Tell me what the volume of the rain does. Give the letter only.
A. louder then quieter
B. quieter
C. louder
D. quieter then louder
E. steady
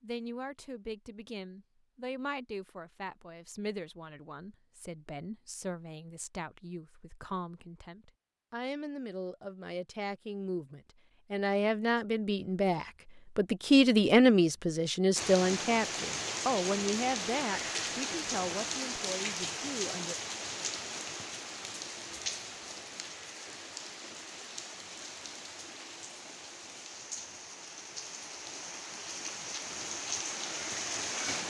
D.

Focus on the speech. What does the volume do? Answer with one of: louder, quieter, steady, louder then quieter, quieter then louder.
louder then quieter.